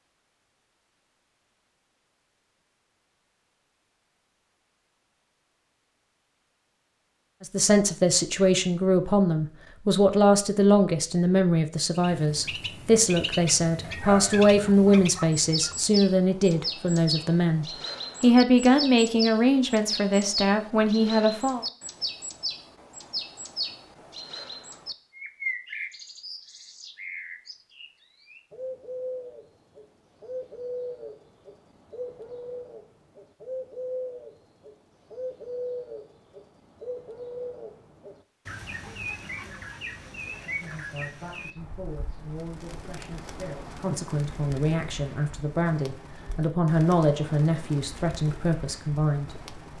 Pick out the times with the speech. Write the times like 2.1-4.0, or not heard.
7.4-21.6, 40.4-49.4.